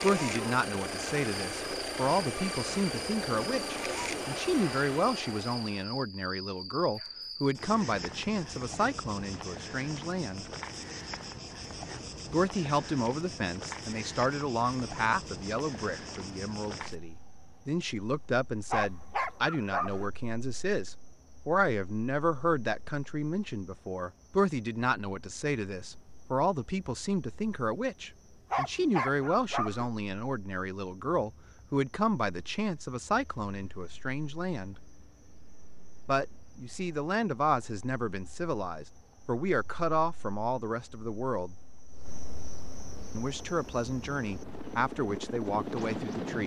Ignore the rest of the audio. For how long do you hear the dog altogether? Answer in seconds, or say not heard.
3 s.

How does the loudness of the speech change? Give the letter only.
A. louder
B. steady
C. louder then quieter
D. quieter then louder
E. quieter
B.